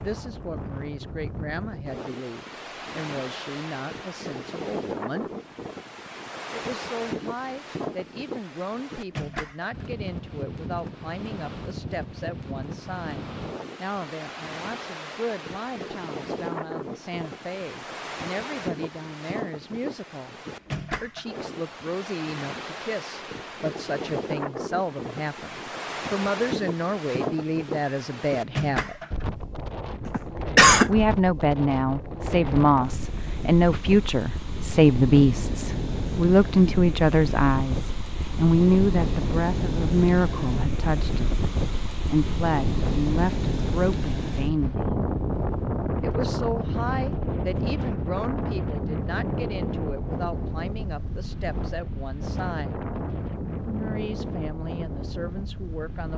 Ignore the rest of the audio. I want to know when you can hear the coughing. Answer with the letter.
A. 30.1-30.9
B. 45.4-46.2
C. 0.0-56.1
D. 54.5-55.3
A.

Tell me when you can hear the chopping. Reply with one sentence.
You can't hear the chopping here.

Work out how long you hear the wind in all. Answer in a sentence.
The wind can be heard for 56 seconds in total.